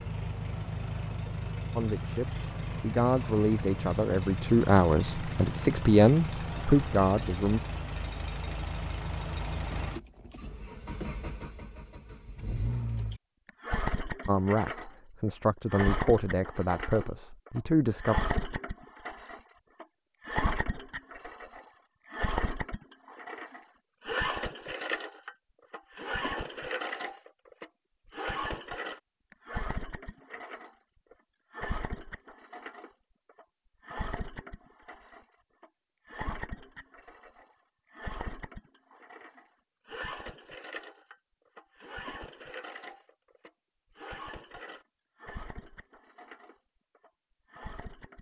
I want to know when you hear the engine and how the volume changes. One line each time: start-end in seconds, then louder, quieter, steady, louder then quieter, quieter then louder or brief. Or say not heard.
0.0-48.1 quieter.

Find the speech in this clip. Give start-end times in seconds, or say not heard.
1.8-7.6, 14.2-18.1.